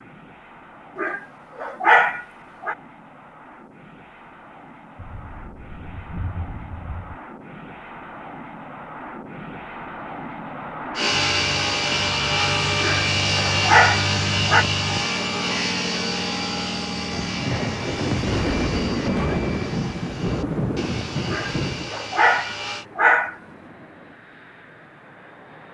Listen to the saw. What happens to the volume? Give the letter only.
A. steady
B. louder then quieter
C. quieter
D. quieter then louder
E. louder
C.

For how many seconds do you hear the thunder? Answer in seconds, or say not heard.
7 s.